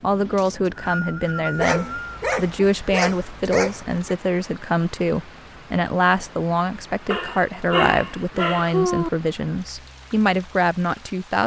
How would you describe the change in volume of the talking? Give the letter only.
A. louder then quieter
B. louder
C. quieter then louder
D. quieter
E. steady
E.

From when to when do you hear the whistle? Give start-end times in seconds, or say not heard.
0.3-2.2.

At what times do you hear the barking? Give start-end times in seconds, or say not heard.
1.6-4.2, 7.1-9.1.